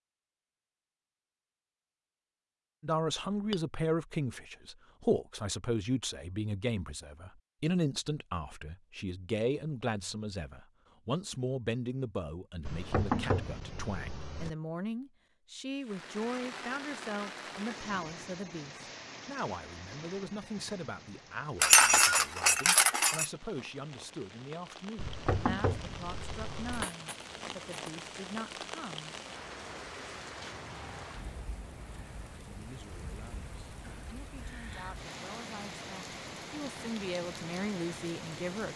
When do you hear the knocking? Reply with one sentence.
The knocking can be heard from 12.7 to 14.5 s and from 24.9 to 26.9 s.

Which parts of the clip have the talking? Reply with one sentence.
The talking can be heard from 2.8 to 29.1 s and from 32.5 to 38.7 s.